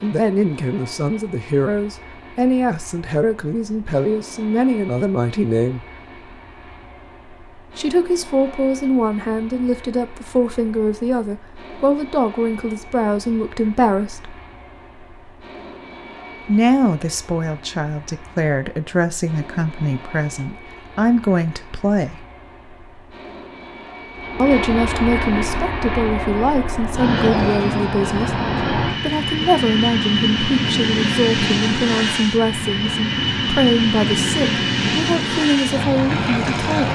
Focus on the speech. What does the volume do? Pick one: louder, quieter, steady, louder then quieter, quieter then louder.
steady.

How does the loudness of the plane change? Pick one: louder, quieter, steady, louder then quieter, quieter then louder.
louder.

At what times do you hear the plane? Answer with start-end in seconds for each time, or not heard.
0.0-36.9.